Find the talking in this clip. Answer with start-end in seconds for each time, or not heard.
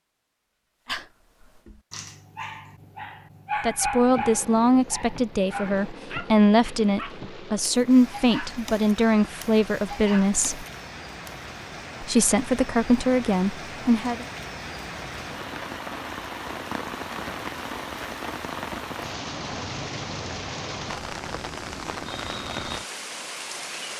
3.6-10.7, 12.0-14.2.